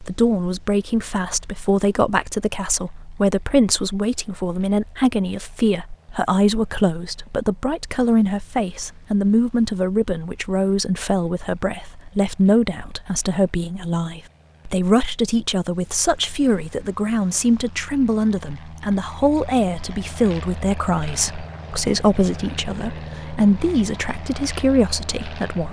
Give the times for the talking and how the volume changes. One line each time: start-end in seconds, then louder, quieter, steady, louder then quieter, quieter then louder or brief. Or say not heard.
0.0-25.6 steady.